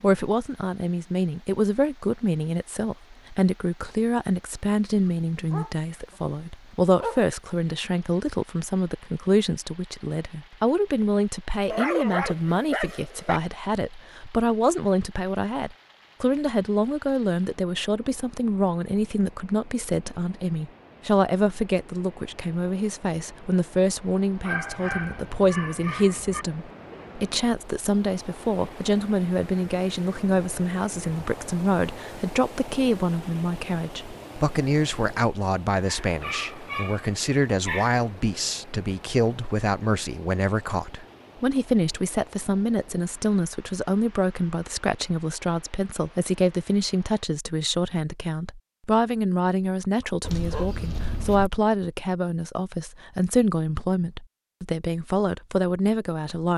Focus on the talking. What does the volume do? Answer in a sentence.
The volume of the talking stays about the same.